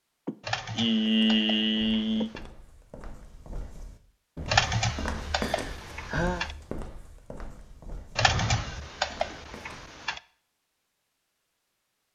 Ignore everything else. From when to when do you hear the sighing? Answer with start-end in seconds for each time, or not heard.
0.2-2.3, 5.3-6.5, 8.2-8.9.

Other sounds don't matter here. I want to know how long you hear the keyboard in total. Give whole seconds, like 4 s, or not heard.
6 s.